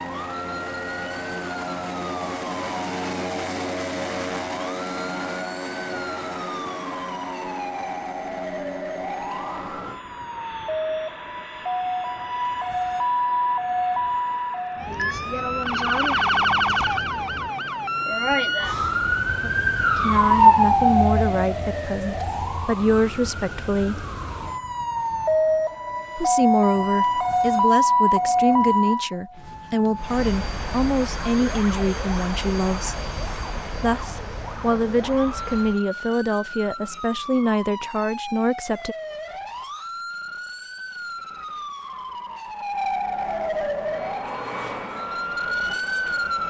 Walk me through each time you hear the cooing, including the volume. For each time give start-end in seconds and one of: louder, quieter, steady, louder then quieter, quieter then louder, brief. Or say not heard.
not heard.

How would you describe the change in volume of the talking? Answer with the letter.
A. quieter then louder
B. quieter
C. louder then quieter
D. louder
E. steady
E.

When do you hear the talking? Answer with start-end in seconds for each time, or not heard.
19.9-24.1, 26.1-33.0, 33.8-39.0.